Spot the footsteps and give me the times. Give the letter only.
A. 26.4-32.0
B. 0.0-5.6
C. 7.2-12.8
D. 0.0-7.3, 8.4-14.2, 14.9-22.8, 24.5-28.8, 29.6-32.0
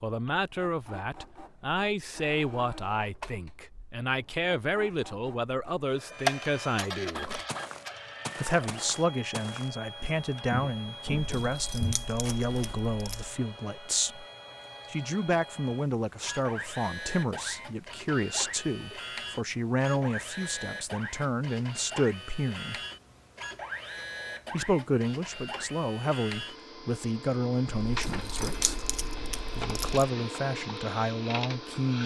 C.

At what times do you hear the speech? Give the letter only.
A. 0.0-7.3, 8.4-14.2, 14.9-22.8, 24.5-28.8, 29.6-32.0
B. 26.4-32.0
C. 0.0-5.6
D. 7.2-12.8
A.